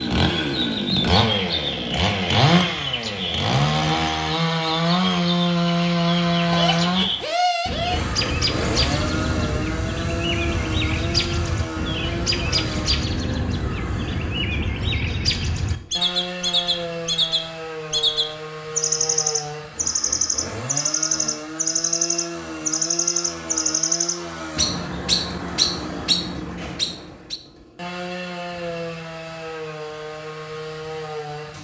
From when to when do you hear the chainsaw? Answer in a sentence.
You can hear the chainsaw from 0.0 to 31.5 s.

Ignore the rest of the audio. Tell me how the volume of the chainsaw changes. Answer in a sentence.
The loudness of the chainsaw goes down.